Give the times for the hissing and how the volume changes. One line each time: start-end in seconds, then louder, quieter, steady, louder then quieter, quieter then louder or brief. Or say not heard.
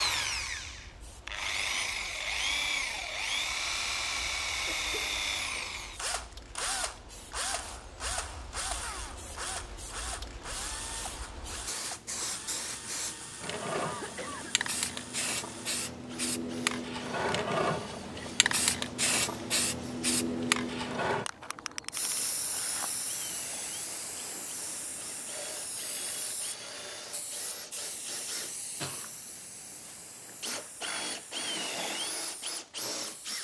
0.1-33.3 louder then quieter.